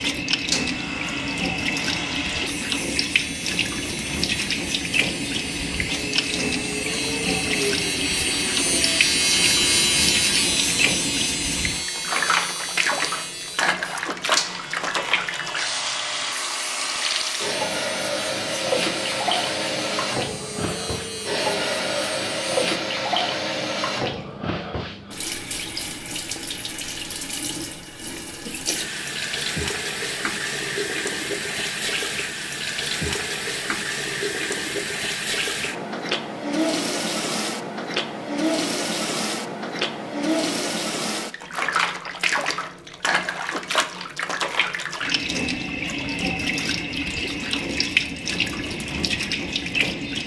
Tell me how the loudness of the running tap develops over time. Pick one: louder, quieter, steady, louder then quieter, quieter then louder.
steady.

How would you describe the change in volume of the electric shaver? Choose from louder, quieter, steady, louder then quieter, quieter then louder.
louder then quieter.